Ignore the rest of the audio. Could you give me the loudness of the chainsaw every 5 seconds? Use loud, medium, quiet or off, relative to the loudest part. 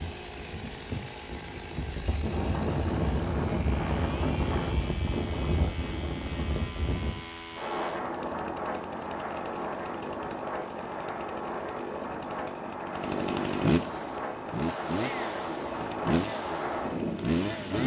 medium, medium, loud, loud.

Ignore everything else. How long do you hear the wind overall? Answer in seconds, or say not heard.
18 s.